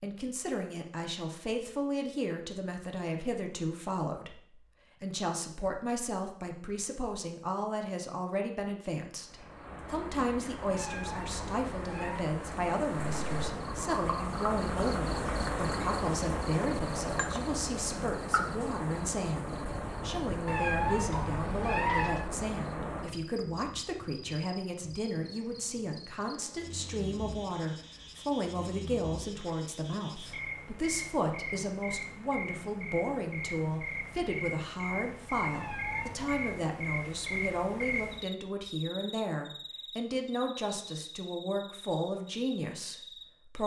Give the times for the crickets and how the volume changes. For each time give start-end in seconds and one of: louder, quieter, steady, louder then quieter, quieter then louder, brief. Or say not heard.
9.2-43.6 quieter then louder.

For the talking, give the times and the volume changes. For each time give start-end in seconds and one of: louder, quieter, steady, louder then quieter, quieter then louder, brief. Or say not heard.
0.0-43.6 steady.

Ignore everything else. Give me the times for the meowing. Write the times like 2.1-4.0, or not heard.
10.7-12.2, 20.4-22.2, 35.5-36.5.